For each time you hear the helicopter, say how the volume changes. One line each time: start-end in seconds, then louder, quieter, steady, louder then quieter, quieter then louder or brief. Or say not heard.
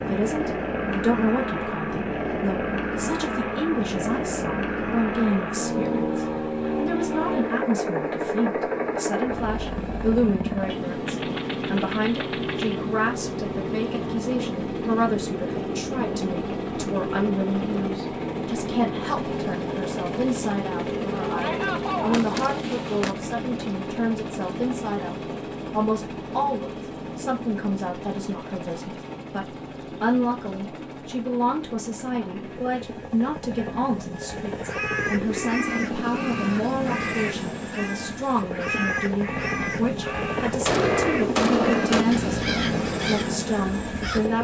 0.0-44.3 quieter then louder.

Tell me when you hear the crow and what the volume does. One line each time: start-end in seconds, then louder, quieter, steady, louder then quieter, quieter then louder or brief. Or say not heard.
34.6-44.2 steady.